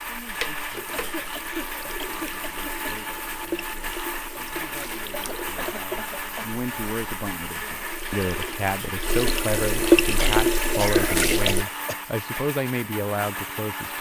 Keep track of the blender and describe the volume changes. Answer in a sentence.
The loudness of the blender stays about the same.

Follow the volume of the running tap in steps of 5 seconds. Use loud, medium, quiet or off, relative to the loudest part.
quiet, loud, loud.